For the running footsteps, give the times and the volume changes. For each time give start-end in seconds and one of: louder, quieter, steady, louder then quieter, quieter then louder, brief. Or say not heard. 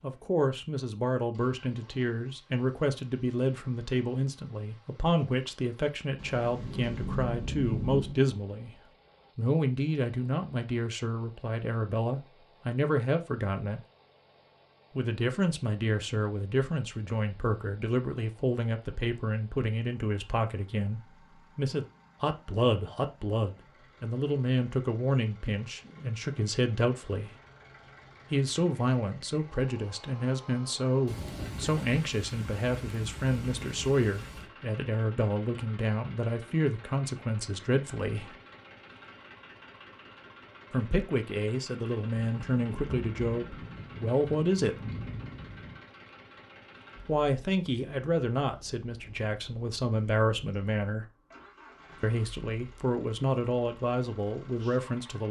not heard.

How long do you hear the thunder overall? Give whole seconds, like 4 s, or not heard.
9 s.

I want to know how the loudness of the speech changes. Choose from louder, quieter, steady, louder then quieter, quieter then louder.
steady.